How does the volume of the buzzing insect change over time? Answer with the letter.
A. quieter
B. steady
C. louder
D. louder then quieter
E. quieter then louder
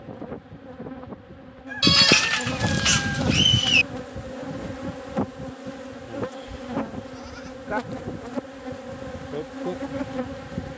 C.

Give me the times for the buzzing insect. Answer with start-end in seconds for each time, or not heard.
0.0-10.7.